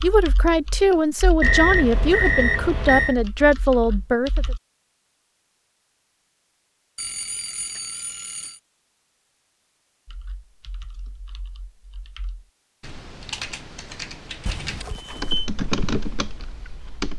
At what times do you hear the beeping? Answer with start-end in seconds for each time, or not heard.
1.4-3.1, 7.0-8.6, 14.4-15.5.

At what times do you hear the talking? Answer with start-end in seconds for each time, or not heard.
0.0-4.5.